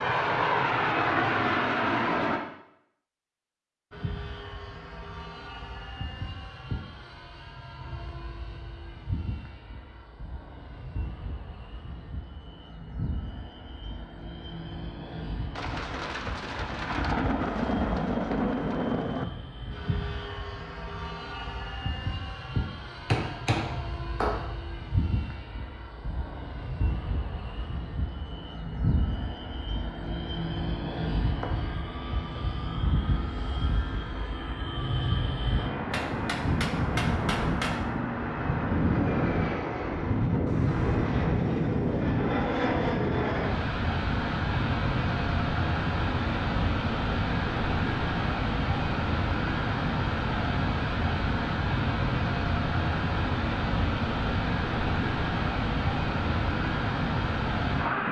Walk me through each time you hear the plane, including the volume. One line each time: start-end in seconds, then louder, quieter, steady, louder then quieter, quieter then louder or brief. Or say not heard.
0.0-2.4 brief
3.9-58.0 louder.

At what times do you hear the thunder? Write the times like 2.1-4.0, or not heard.
15.6-19.2, 40.5-42.0.